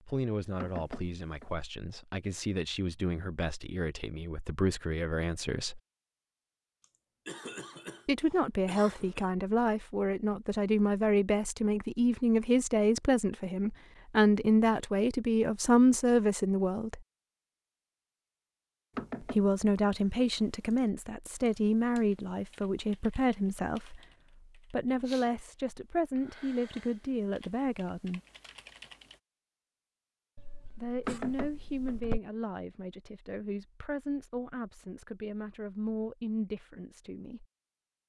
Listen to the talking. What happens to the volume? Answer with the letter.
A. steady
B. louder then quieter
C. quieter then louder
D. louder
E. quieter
B.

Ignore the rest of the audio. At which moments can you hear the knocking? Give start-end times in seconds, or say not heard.
0.6-1.6, 18.9-19.6, 31.1-32.0.